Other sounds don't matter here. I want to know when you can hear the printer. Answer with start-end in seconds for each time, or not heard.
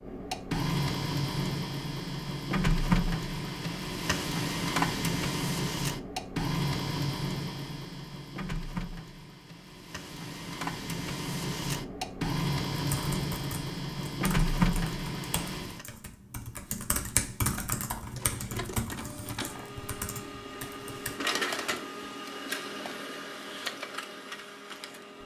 0.0-15.8, 17.9-25.2.